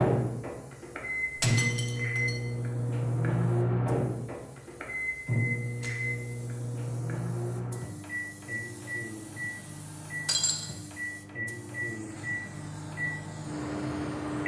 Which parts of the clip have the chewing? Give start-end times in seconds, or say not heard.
not heard.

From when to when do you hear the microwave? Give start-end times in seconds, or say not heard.
0.0-14.4.